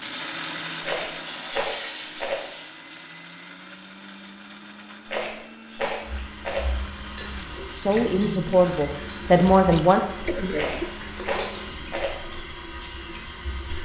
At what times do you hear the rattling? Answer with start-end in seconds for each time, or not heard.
0.8-2.5, 5.0-6.7, 10.6-12.2.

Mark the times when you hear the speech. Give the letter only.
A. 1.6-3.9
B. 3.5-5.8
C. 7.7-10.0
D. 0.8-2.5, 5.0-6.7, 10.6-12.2
C.